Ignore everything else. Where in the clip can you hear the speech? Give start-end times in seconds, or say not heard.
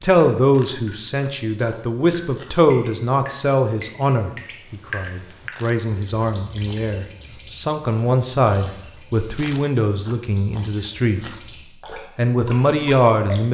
0.0-11.2, 12.2-13.4.